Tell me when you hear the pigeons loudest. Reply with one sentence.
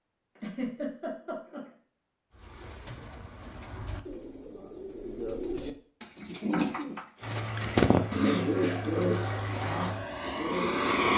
The loudest moment of the pigeons is at 8 seconds.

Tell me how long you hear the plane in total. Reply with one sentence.
You can hear the plane for 4 seconds altogether.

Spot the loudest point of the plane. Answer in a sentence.
The volume of the plane peaks at 11 seconds.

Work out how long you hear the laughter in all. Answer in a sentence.
The laughter can be heard for 2 seconds in total.